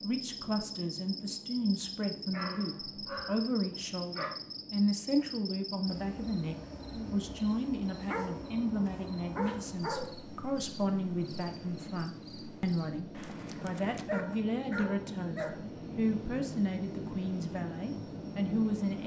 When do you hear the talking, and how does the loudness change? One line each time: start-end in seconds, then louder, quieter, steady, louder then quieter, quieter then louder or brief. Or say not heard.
0.0-19.0 steady.